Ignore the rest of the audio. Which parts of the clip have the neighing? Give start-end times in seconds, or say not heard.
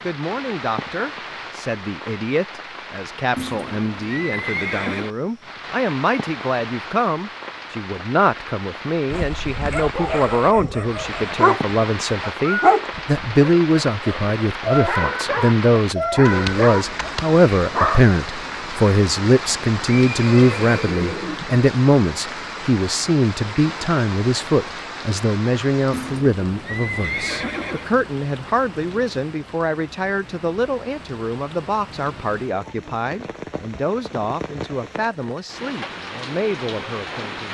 3.4-5.1, 19.9-21.5, 25.9-27.9.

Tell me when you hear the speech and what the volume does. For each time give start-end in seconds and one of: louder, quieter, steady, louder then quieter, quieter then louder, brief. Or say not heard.
0.0-37.4 louder then quieter.